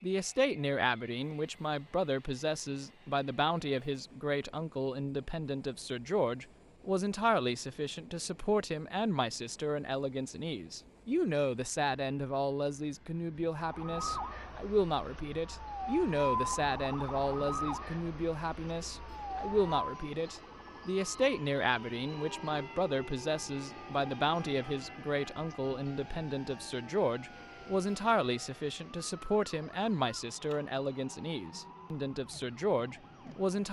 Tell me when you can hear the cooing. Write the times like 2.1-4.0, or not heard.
not heard.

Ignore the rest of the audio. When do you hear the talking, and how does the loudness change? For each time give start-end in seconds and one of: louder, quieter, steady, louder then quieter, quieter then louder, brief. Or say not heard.
0.0-33.6 steady.